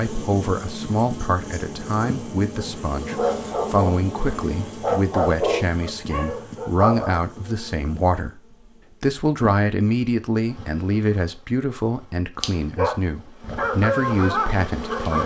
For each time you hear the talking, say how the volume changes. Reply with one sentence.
The talking can be heard from 0.0 to 8.4 s, at a steady volume; and from 9.0 to 15.2 s, getting quieter then louder.